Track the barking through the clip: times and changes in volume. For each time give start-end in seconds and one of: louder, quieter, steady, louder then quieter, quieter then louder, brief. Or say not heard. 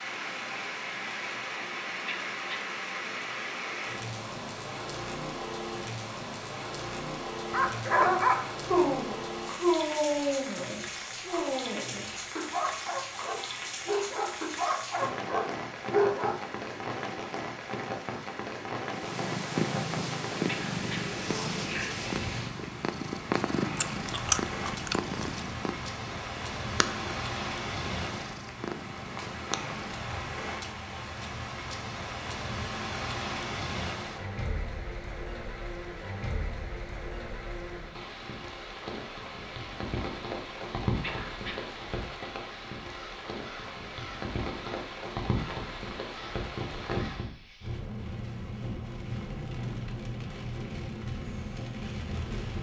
7.5-16.4 quieter.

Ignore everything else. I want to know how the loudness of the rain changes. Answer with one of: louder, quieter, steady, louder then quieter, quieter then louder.
steady.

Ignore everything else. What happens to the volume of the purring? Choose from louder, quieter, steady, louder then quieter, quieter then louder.
quieter.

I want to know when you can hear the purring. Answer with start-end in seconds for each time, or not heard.
18.9-30.0.